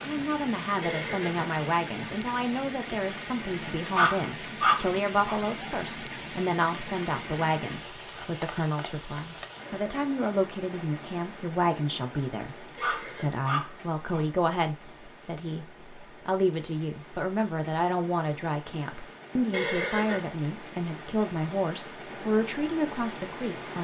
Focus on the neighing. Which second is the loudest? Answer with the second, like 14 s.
20 s.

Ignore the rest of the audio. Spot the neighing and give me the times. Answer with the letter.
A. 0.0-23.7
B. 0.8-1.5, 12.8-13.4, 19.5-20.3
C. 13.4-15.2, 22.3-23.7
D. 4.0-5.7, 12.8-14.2
B.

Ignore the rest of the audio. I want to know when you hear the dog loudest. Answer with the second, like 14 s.
5 s.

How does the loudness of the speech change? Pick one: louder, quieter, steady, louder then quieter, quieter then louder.
steady.